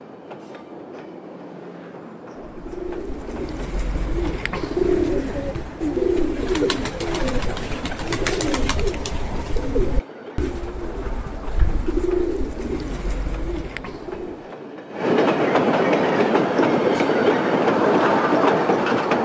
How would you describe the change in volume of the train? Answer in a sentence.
The loudness of the train goes up.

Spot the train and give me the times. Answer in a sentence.
You can hear the train from 0.0 to 19.2 s.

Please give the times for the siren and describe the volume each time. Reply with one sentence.
You can't hear the siren here.